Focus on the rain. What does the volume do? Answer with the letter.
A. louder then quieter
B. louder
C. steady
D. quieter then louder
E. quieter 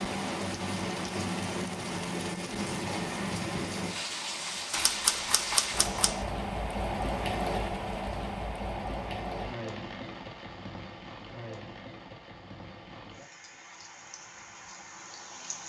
E.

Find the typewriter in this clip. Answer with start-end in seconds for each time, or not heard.
4.7-6.2.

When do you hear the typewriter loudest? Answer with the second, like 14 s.
5 s.